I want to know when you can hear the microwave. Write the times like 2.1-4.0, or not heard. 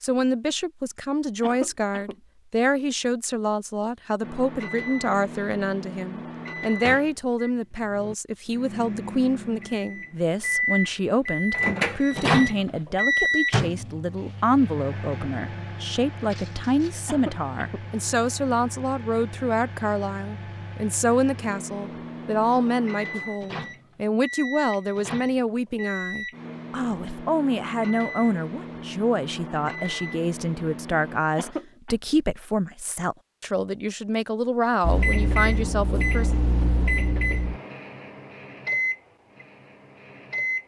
4.2-31.2, 34.8-40.6.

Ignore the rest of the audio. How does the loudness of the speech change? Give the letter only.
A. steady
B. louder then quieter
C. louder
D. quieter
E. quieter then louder
A.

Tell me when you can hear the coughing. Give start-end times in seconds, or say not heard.
1.4-2.2, 17.1-17.9, 31.4-31.9.